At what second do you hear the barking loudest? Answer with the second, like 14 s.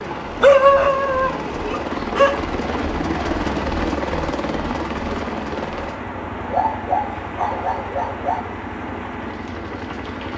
1 s.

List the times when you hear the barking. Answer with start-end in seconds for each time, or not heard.
0.4-2.4, 6.5-8.4.